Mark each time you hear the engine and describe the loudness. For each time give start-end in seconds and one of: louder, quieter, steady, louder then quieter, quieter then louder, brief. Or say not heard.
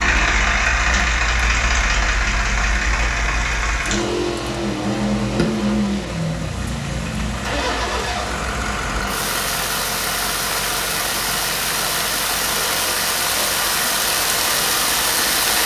0.0-15.6 quieter.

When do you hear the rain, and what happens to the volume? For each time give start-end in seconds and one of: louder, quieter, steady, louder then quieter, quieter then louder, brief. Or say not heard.
0.2-15.6 louder.